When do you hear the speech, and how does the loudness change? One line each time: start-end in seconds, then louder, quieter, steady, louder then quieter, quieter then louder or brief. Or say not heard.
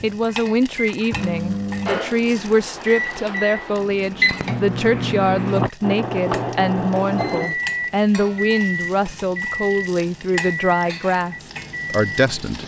0.0-12.6 steady.